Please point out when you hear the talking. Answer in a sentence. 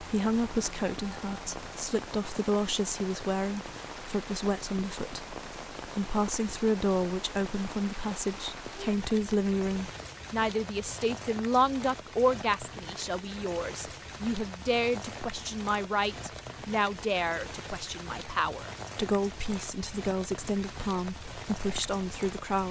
You can hear the talking from 0.0 to 22.6 s.